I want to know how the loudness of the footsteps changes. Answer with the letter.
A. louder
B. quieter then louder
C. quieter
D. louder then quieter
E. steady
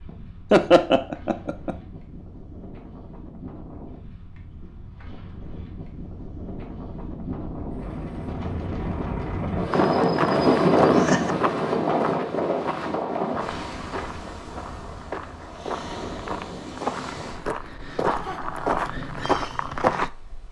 B.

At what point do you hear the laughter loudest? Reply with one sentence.
The volume of the laughter peaks at 1 second.